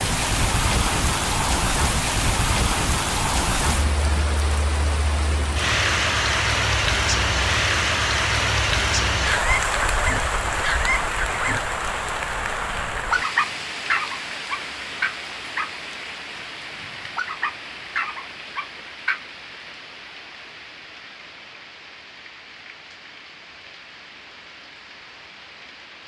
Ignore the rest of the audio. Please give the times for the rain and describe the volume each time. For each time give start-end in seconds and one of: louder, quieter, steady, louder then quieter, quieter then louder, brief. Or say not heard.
0.0-26.0 quieter.